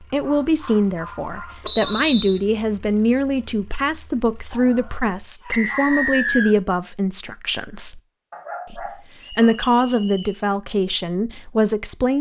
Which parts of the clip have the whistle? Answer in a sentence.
You can hear the whistle from 1.6 to 2.4 s, from 5.5 to 6.5 s and from 9.2 to 10.4 s.